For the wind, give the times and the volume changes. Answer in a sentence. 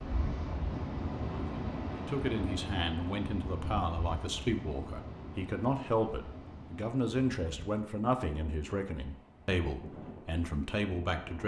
The wind can be heard from 0.0 to 11.4 s, getting quieter.